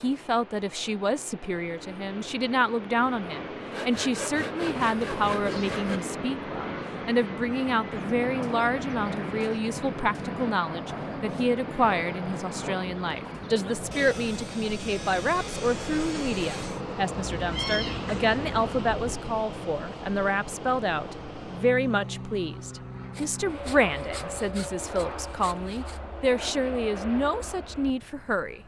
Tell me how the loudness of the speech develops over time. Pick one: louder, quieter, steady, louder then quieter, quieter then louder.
steady.